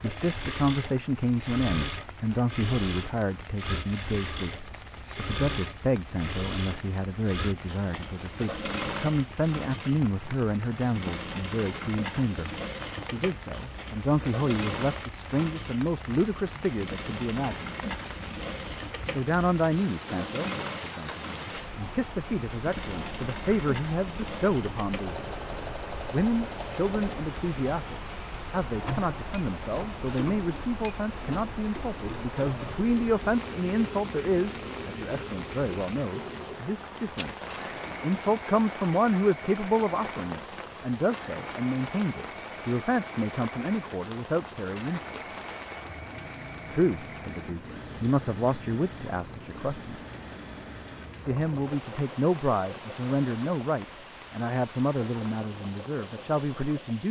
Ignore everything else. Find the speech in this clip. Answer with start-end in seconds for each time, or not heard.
0.0-17.8, 19.1-25.2, 26.1-45.1, 46.7-50.0, 51.2-57.0.